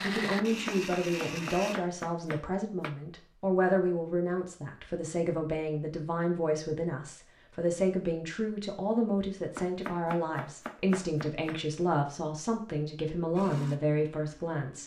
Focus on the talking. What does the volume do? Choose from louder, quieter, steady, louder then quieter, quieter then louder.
steady.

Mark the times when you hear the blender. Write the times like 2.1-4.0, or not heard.
0.0-1.8, 13.3-14.8.